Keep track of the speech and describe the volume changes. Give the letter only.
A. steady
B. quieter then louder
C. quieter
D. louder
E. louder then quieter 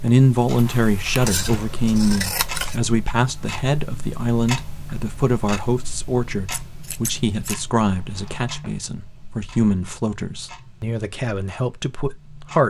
C.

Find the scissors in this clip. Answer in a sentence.
You can hear the scissors from 1.2 to 2.8 s and from 6.5 to 7.6 s.